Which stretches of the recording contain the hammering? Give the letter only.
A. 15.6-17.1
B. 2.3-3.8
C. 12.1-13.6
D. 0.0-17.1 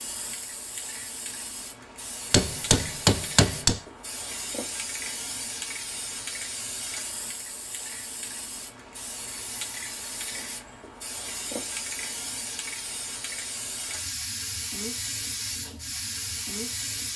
B.